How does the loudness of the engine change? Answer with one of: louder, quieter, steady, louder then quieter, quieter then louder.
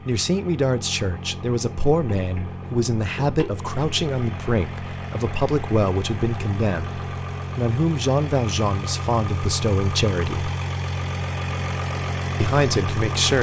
louder.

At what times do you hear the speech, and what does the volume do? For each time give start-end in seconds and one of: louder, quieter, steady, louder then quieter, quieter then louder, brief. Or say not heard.
0.1-10.5 steady
12.4-13.3 brief.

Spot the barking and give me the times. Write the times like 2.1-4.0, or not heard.
not heard.